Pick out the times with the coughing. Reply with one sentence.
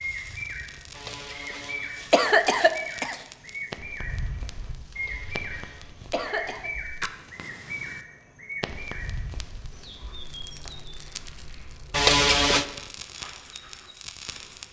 You can hear the coughing from 0.9 to 3.2 s, from 5.0 to 6.7 s and from 11.9 to 12.7 s.